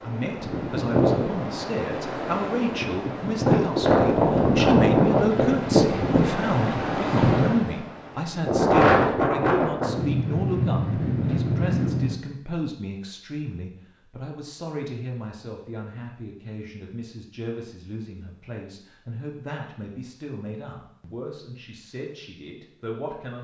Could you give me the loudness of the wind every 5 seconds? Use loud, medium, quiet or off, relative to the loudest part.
loud, loud, loud, off, off.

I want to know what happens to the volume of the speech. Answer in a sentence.
The volume of the speech goes down.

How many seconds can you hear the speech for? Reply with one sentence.
You can hear the speech for 23 seconds altogether.